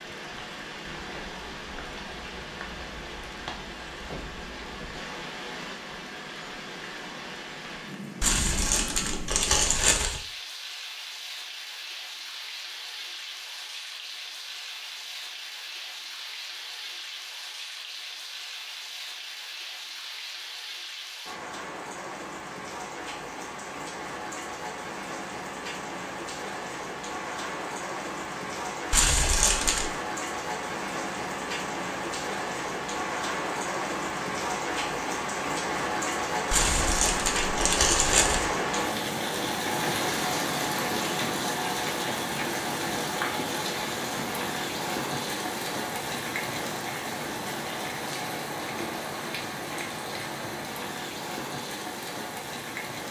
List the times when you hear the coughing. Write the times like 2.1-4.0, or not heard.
not heard.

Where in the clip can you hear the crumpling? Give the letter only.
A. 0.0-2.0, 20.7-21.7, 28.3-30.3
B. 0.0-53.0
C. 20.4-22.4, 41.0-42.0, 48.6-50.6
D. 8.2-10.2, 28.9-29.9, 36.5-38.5
D.